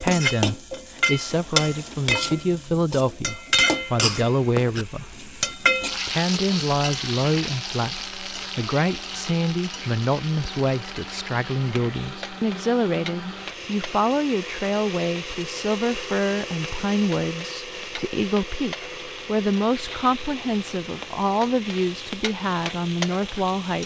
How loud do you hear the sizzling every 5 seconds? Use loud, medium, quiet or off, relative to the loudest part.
loud, loud, quiet, quiet, medium.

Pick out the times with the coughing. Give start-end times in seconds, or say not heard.
4.0-4.8.